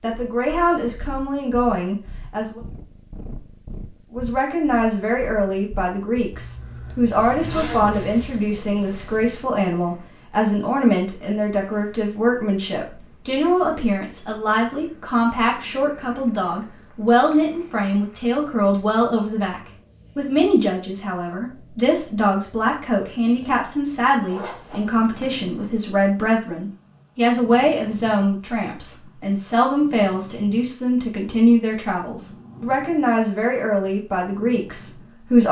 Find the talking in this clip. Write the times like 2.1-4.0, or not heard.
0.0-2.6, 4.1-35.4.